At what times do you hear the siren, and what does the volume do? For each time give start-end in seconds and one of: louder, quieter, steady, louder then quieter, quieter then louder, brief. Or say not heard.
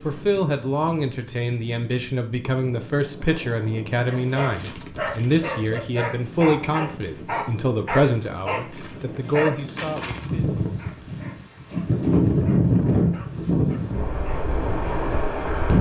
not heard.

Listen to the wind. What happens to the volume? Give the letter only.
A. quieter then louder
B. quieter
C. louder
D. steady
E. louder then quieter
C.